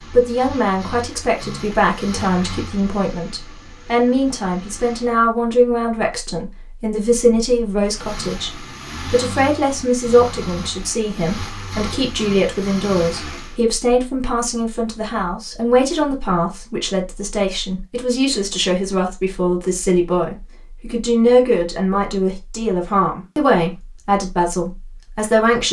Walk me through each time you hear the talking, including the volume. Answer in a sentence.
You can hear the talking from 0.1 to 25.6 s, at a steady volume.